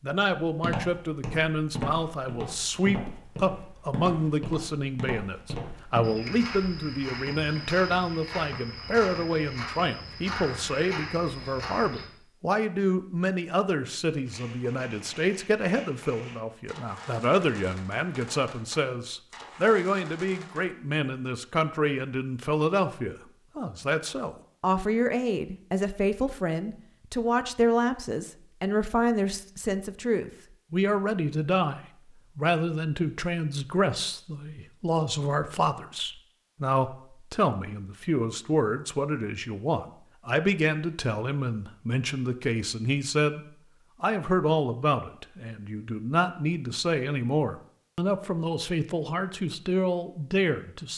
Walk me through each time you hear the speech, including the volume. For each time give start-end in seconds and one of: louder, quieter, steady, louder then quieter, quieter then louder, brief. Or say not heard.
0.0-43.4 steady
44.0-50.9 steady.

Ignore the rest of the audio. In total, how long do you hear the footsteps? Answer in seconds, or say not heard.
12 s.